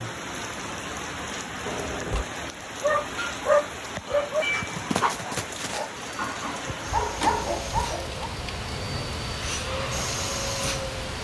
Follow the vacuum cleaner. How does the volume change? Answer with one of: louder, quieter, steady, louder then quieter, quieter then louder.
louder.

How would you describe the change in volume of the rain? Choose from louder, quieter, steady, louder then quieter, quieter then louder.
steady.